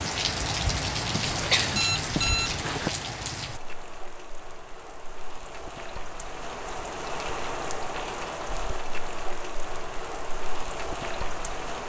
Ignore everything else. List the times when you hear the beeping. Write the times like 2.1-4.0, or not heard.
1.1-2.9.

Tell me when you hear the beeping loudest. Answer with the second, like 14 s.
2 s.